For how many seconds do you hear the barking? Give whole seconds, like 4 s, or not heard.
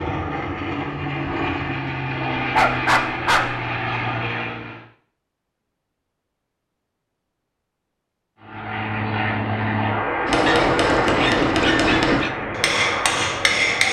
3 s.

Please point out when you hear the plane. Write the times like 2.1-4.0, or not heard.
0.0-4.8, 8.4-13.8.